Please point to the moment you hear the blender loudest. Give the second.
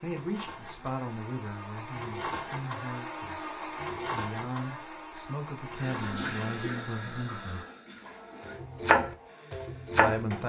4 s.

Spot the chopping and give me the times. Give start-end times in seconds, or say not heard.
8.4-10.4.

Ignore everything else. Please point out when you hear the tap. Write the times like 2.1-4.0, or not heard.
5.8-8.6.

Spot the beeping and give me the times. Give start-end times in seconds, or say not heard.
not heard.